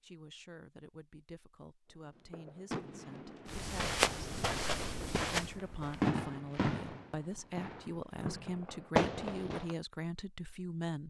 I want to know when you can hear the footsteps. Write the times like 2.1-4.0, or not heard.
3.5-6.2.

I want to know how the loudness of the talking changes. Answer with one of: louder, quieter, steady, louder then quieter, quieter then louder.
louder.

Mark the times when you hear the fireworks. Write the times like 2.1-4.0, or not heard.
2.1-9.8.